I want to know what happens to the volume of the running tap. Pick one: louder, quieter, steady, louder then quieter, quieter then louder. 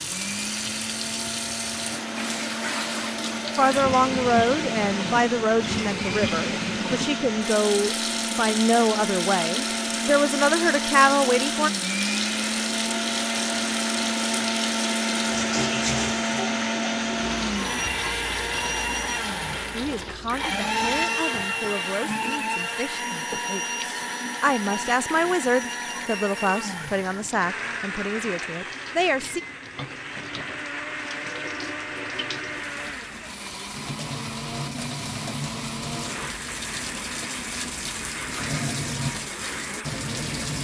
quieter then louder.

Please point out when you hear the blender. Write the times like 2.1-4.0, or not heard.
0.0-40.5.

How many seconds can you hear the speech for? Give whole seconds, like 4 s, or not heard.
18 s.